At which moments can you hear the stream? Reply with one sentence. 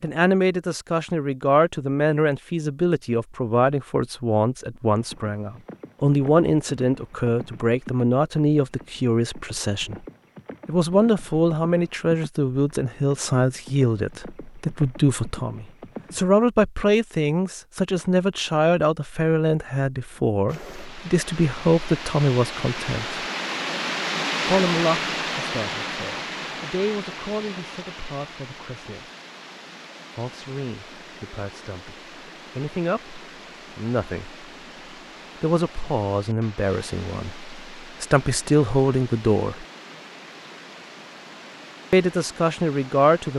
The stream can be heard from 20.4 to 43.3 s.